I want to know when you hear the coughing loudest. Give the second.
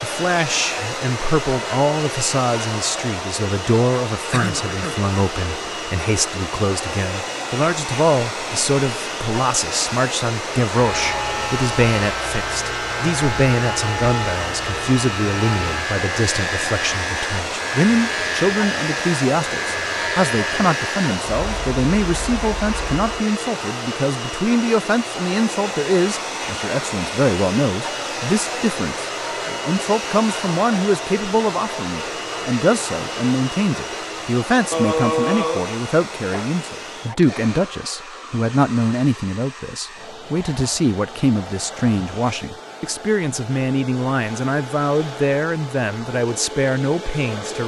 35 s.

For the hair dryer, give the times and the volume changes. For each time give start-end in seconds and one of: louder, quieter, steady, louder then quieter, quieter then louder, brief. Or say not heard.
0.0-47.6 quieter.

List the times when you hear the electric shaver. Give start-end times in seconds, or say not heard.
10.7-23.1.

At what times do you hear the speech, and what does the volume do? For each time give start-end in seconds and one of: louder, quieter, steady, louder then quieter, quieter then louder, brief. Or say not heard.
0.0-47.6 steady.